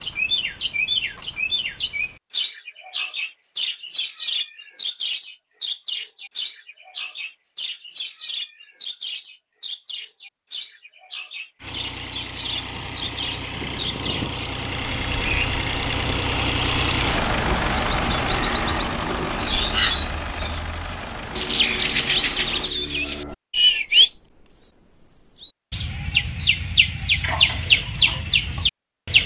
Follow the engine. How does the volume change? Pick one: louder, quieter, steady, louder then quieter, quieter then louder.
louder then quieter.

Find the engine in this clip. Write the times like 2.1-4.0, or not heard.
11.6-22.8.